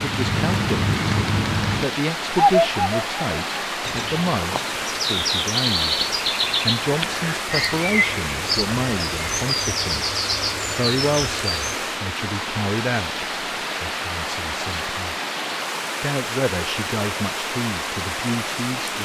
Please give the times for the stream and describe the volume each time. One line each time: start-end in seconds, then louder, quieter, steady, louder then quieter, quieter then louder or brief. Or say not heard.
0.0-19.0 steady.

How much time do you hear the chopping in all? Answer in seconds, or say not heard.
not heard.